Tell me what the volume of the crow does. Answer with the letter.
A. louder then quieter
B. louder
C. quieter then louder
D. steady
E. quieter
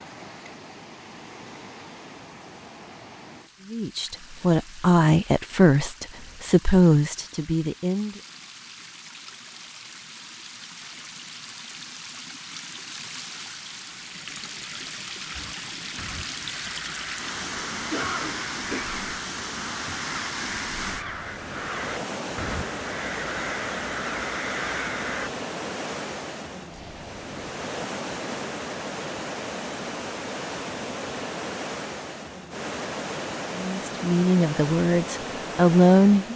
B.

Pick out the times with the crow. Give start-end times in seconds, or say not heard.
15.3-25.3.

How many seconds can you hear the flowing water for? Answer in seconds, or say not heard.
36 s.